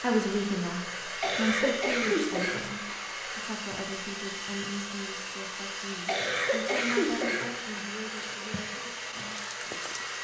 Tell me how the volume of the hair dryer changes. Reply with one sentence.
The volume of the hair dryer stays about the same.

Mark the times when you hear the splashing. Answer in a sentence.
The splashing can be heard from 8.3 to 10.2 s.